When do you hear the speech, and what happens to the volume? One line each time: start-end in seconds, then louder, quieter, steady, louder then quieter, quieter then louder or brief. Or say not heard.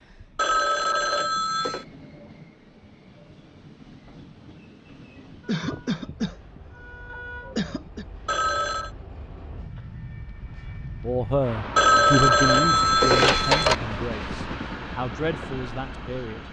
11.0-16.4 quieter.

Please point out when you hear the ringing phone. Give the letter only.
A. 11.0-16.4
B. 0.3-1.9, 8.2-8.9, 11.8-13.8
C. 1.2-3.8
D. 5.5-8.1
B.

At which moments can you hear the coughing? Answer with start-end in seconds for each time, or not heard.
5.5-8.1.